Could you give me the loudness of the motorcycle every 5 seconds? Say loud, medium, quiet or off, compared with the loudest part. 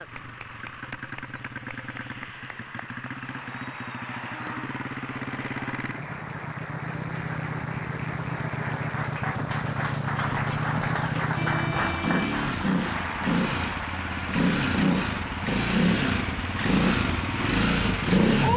quiet, medium, loud, loud.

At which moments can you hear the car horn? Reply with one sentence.
The car horn can be heard from 4.3 to 4.8 s and from 11.3 to 12.4 s.